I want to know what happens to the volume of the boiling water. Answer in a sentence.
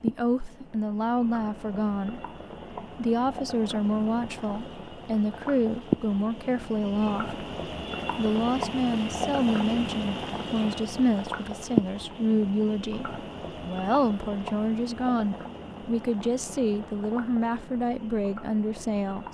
The loudness of the boiling water goes up, then down.